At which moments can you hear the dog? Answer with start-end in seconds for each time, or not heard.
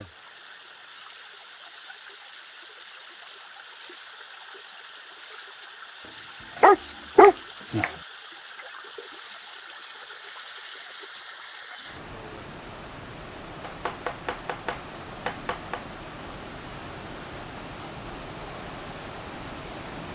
6.6-7.8.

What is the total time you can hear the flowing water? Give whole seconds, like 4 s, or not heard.
20 s.